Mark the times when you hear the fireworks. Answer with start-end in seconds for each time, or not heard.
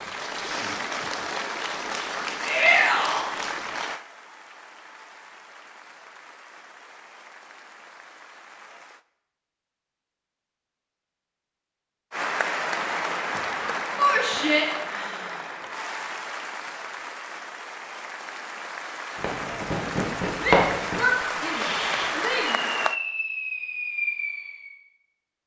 19.1-24.7.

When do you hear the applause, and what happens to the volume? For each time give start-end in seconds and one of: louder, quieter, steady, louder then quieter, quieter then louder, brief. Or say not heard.
0.0-9.1 quieter
12.1-22.9 quieter then louder.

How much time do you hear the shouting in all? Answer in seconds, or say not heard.
4 s.